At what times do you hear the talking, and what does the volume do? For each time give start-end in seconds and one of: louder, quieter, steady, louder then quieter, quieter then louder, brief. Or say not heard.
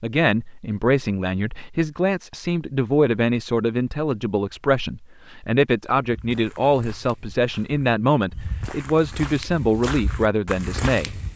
0.0-11.2 steady.